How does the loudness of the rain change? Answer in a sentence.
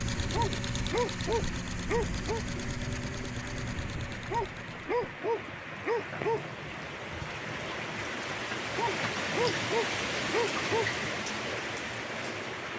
The loudness of the rain goes up.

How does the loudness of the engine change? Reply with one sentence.
The volume of the engine goes down.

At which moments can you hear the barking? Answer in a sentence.
The barking can be heard from 0.3 to 2.4 s, from 4.3 to 6.5 s and from 8.8 to 10.9 s.